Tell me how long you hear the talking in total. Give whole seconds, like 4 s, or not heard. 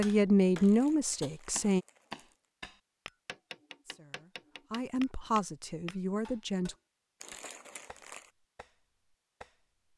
5 s.